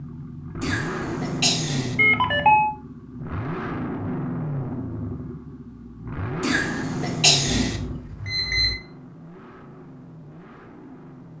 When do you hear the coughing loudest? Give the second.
7 s.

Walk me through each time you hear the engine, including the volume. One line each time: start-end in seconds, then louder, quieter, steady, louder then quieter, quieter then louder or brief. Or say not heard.
0.0-11.3 quieter.